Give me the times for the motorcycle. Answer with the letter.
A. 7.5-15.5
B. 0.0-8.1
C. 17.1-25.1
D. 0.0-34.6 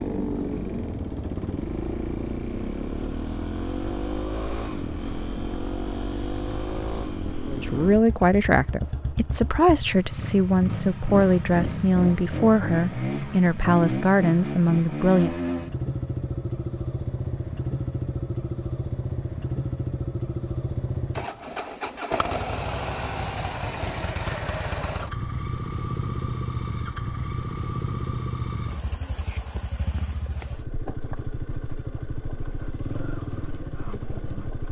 D.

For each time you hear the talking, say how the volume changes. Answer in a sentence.
The talking can be heard from 7.5 to 15.5 s, at a steady volume.